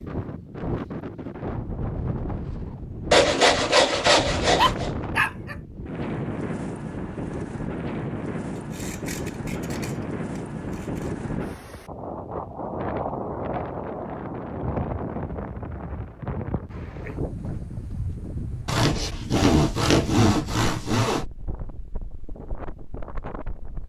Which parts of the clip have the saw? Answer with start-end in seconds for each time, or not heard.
3.1-4.9, 8.6-11.1, 18.6-21.2.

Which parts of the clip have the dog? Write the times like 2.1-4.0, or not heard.
4.5-5.5.